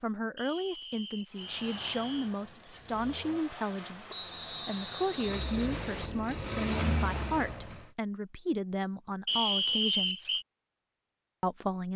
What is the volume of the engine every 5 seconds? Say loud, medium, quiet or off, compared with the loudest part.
medium, loud, off.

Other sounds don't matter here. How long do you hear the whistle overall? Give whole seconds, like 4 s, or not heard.
5 s.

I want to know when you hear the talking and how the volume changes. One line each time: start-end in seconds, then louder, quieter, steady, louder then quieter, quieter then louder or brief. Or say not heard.
0.0-10.3 steady
11.4-11.9 brief.